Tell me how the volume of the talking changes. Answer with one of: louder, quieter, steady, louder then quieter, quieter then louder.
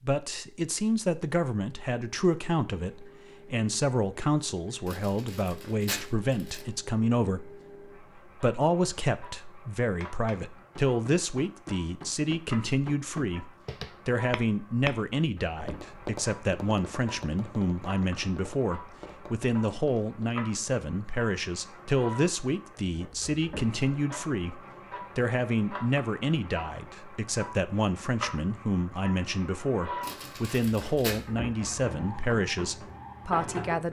steady.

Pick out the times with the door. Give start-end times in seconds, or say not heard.
not heard.